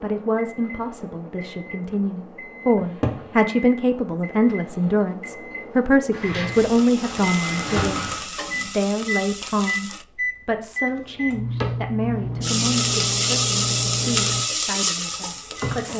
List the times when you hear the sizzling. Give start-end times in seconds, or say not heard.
6.5-10.1, 12.4-15.9.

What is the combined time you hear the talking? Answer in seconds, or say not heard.
16 s.